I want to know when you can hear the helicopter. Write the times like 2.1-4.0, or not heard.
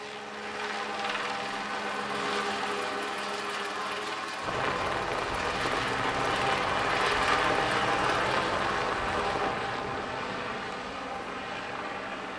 0.0-12.3.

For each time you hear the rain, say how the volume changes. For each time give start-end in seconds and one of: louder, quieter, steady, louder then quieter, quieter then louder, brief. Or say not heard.
4.4-12.3 quieter.